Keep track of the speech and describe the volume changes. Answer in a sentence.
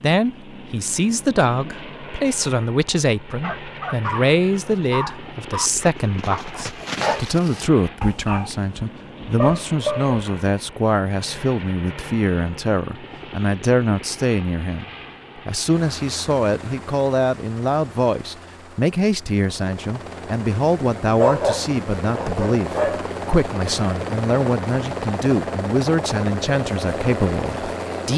The volume of the speech stays about the same.